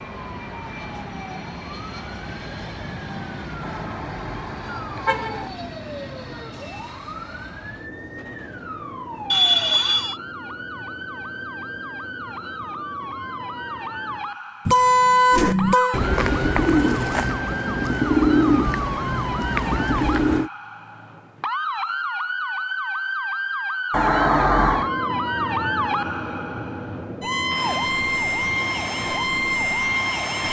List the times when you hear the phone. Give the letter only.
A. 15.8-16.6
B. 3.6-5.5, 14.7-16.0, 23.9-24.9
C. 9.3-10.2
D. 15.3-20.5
C.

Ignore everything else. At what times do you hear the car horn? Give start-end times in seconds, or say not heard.
3.6-5.5, 14.7-16.0, 23.9-24.9.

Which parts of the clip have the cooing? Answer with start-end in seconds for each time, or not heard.
15.3-20.5.